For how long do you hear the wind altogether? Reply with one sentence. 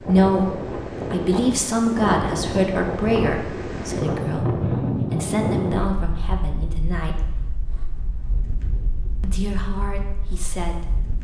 The wind can be heard for 11 seconds in total.